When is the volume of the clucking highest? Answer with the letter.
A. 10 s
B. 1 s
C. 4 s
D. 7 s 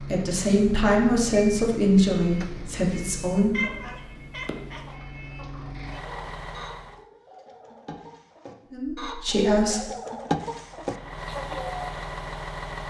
A.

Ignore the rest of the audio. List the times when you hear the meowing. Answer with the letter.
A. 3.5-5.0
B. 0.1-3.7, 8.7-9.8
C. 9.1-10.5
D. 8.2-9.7
A.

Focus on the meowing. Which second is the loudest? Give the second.
4 s.